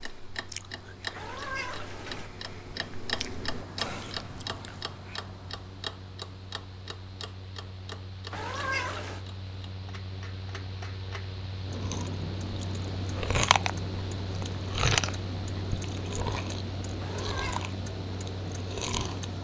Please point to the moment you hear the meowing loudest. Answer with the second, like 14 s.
9 s.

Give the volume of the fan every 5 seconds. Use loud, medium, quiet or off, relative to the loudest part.
quiet, medium, loud, loud.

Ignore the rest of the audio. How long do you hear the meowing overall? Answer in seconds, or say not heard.
3 s.